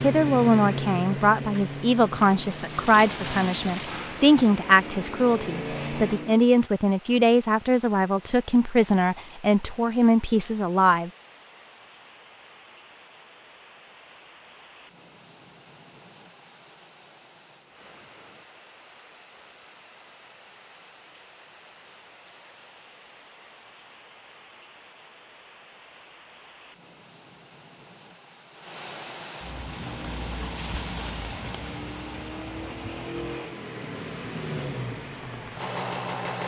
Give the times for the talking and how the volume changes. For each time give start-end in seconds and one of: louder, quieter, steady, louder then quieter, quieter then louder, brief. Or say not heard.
0.0-11.1 steady.